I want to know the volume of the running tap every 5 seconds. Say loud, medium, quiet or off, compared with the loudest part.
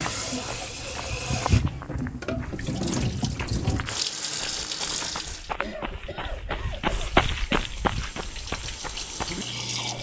loud, medium.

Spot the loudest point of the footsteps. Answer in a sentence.
The loudest moment of the footsteps is at 7 seconds.